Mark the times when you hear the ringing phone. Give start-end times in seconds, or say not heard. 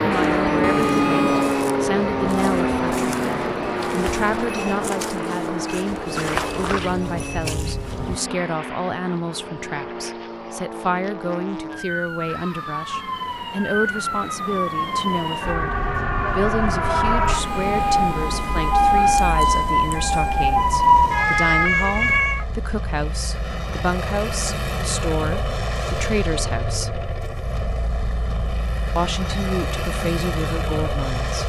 not heard.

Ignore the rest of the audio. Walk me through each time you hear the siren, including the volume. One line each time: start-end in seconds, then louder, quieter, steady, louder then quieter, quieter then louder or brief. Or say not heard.
0.0-22.4 quieter then louder.